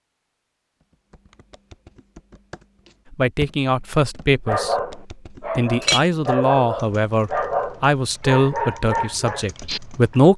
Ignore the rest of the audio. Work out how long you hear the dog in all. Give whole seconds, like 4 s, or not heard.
6 s.